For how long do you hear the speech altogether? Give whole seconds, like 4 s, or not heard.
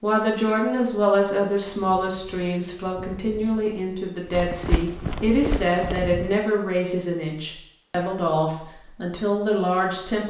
10 s.